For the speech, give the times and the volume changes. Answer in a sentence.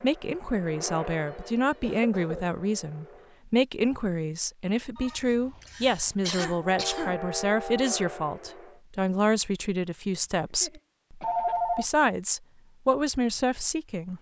You can hear the speech from 0.0 to 14.1 s, at a steady volume.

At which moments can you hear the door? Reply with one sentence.
The door can't be heard in this clip.